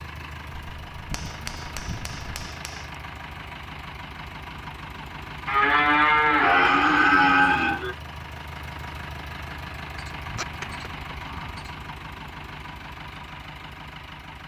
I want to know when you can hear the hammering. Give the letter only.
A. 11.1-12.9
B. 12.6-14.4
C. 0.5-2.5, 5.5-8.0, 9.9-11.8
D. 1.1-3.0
D.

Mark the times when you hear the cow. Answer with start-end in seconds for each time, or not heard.
0.5-2.5, 5.5-8.0, 9.9-11.8.